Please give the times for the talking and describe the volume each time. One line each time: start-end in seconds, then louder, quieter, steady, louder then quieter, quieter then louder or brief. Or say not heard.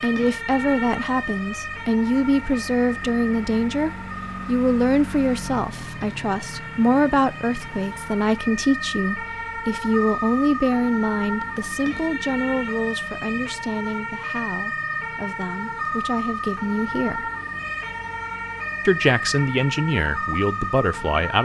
0.0-17.3 quieter
18.9-21.3 brief.